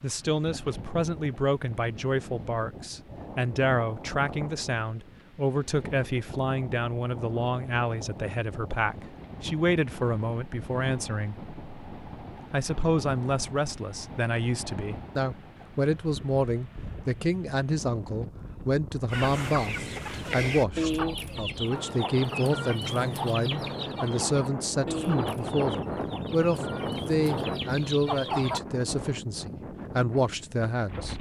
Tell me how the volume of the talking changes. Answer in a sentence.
The loudness of the talking stays about the same.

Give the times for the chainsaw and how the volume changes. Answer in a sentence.
You can't hear the chainsaw here.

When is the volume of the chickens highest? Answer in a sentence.
The volume of the chickens peaks at 21 seconds.